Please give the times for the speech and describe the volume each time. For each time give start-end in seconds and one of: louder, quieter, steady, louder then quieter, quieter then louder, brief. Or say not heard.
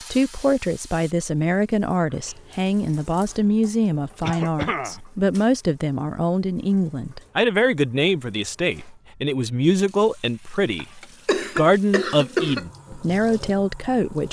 0.1-14.2 steady.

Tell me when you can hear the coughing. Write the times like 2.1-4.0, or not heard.
4.2-5.0, 11.2-12.7.